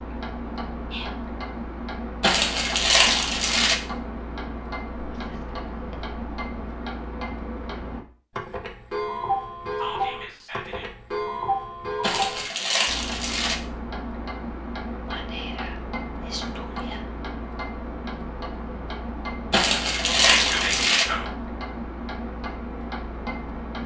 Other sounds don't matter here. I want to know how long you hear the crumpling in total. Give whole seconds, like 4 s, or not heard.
5 s.